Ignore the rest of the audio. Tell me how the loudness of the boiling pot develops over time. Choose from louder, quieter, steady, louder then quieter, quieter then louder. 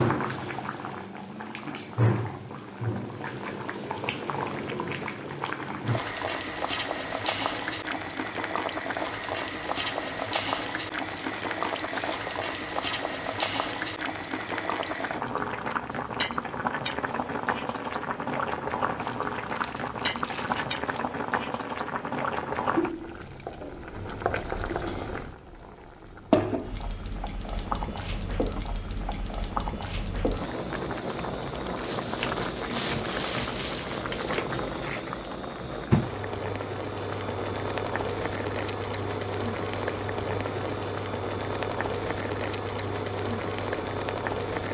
steady.